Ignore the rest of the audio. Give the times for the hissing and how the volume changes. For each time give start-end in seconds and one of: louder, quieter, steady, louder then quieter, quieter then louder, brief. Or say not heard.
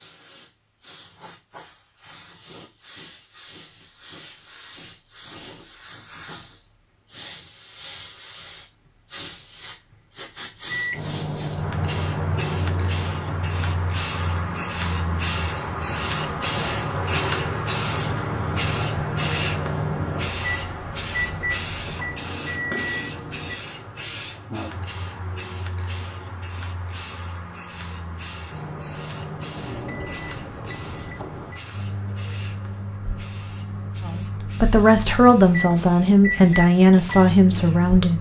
0.0-38.0 louder then quieter.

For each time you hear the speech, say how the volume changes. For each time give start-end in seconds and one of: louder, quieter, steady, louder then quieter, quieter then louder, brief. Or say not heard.
34.0-38.1 steady.